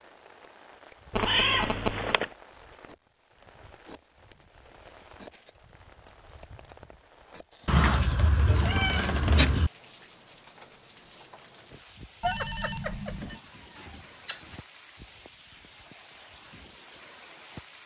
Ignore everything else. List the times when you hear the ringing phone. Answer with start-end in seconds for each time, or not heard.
1.1-2.2, 12.2-13.4.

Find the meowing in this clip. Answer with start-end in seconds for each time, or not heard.
1.1-2.2, 7.7-9.7, 12.8-14.6.